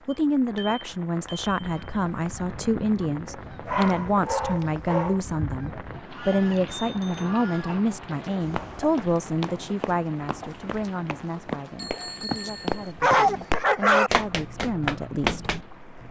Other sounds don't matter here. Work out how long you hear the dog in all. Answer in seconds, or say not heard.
3 s.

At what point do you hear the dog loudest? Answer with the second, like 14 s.
13 s.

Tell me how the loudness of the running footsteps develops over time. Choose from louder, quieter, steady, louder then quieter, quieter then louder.
louder.